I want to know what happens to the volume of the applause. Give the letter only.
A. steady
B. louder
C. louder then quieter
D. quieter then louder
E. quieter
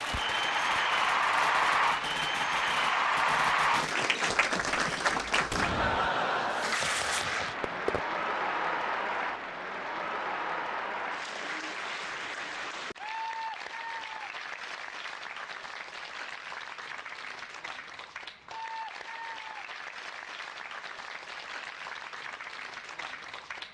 E.